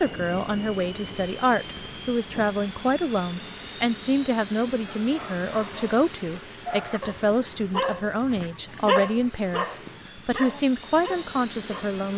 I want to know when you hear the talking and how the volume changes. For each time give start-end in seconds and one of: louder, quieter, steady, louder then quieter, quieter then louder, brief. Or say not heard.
0.0-12.1 steady.